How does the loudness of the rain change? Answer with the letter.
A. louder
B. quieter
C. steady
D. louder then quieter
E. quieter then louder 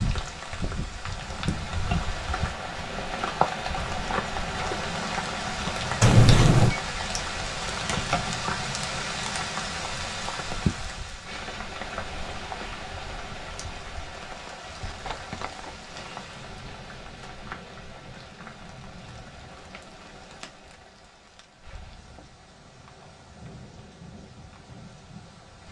B.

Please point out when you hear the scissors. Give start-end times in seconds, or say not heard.
6.0-6.8, 14.3-15.8.